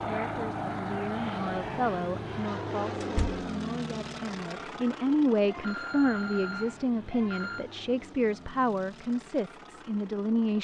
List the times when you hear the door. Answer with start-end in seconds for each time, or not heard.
3.0-3.5.